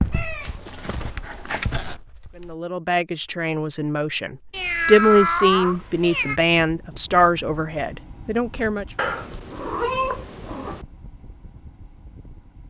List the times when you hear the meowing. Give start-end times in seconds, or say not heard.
0.1-1.9, 4.5-6.4, 8.9-10.8.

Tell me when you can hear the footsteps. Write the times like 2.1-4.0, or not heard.
0.0-2.5.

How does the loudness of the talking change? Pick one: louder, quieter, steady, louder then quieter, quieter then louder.
louder then quieter.